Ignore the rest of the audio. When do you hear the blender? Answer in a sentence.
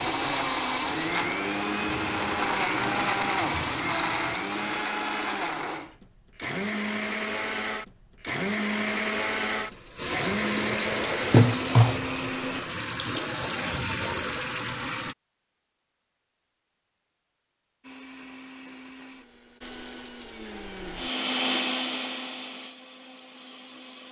You can hear the blender from 0.0 to 12.7 s and from 17.8 to 24.0 s.